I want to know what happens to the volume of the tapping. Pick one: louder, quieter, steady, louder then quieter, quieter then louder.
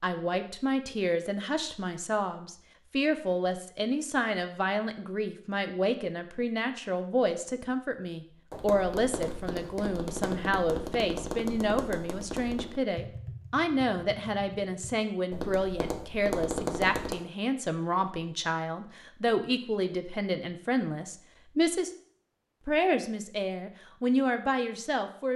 quieter then louder.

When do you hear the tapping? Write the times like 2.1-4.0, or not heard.
8.5-17.1.